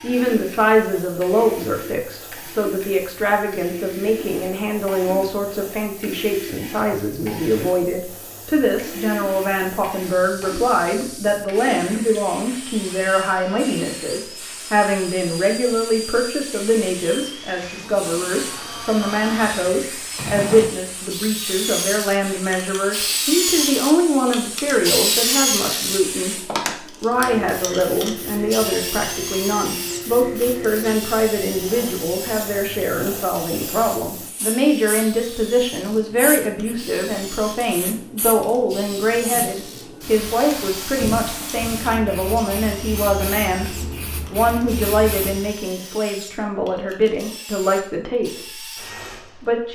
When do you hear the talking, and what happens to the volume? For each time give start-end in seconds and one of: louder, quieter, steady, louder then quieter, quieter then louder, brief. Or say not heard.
0.0-48.6 steady
49.2-49.7 brief.